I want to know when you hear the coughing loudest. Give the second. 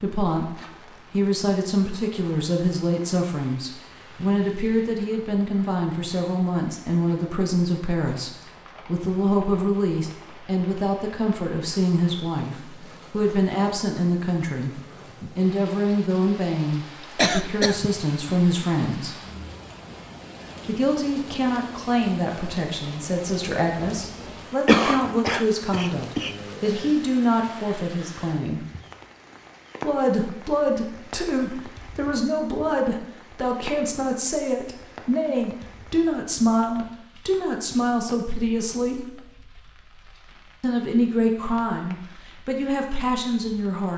25 s.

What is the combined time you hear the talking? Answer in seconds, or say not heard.
40 s.